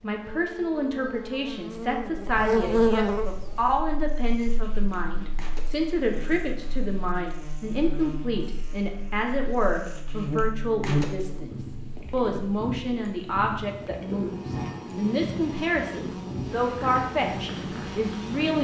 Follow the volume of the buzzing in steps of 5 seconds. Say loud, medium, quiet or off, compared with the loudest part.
loud, quiet, loud, medium.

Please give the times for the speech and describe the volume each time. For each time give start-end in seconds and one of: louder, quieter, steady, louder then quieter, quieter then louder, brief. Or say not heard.
0.0-18.6 steady.